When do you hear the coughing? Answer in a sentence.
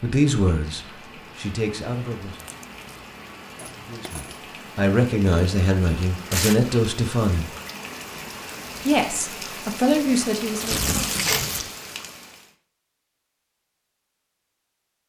The coughing can't be heard in this clip.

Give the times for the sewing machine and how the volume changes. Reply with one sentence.
The sewing machine can't be heard in this clip.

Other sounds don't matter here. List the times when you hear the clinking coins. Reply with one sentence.
The clinking coins can be heard from 3.5 to 4.4 s and from 11.1 to 11.8 s.